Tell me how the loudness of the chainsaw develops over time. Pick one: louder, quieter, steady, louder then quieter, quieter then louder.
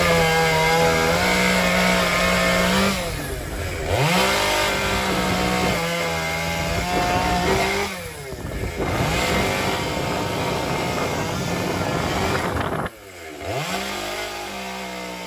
quieter.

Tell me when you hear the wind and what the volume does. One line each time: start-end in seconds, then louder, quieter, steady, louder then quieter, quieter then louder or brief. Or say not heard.
0.1-12.9 louder.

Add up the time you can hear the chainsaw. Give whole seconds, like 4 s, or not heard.
15 s.